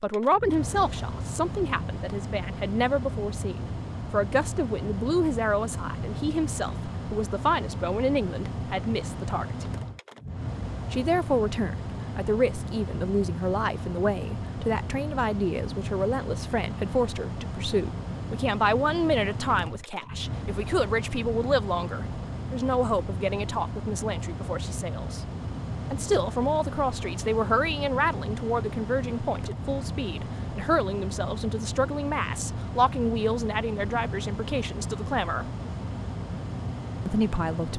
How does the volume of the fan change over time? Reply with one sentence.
The volume of the fan stays about the same.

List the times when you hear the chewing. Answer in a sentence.
The chewing can't be heard in this clip.